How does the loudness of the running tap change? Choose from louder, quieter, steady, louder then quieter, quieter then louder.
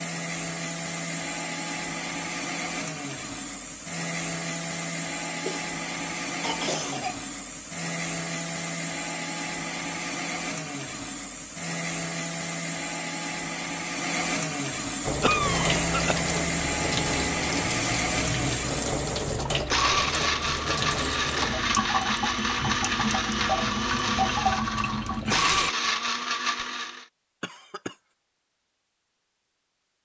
steady.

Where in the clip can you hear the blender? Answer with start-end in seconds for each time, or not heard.
0.0-27.1.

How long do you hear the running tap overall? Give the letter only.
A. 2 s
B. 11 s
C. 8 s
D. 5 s
B.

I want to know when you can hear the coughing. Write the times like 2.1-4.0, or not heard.
5.5-7.2, 15.2-16.2, 27.4-27.9.